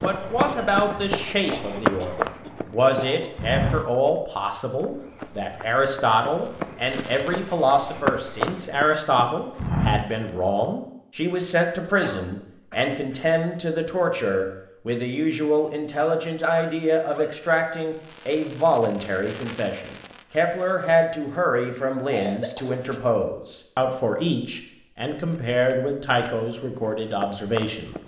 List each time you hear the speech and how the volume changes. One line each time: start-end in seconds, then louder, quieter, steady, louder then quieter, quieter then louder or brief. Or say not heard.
0.0-27.9 steady.